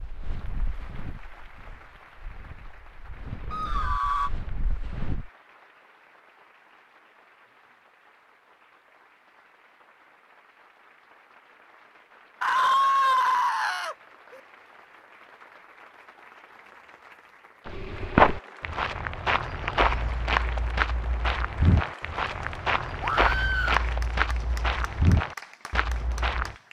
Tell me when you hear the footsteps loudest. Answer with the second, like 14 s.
18 s.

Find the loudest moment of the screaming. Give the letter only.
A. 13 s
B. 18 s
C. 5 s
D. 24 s
A.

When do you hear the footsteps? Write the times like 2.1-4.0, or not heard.
0.0-5.3, 17.6-26.6.